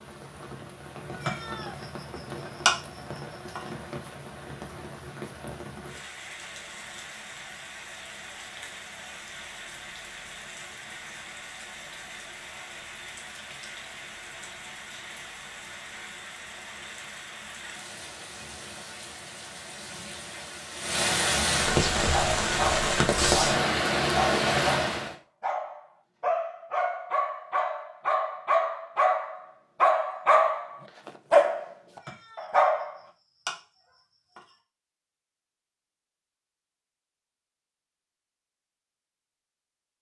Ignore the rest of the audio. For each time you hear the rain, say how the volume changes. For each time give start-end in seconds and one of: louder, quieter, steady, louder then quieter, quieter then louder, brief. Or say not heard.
0.0-25.1 louder.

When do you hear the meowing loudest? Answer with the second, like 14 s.
3 s.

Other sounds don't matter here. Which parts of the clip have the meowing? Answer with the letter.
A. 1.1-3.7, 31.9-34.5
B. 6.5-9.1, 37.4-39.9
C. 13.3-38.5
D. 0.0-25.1
A.